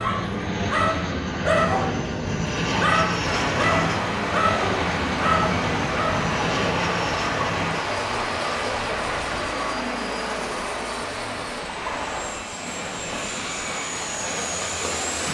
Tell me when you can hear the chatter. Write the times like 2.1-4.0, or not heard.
not heard.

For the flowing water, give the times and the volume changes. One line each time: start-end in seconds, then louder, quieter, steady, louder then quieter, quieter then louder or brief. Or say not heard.
3.2-15.3 quieter.